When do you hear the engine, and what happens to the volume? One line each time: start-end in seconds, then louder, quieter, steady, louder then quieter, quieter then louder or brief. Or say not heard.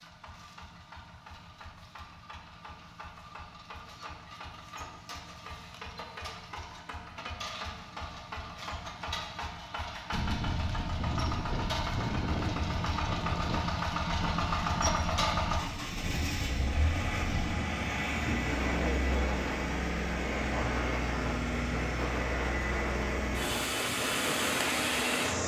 0.0-25.4 louder.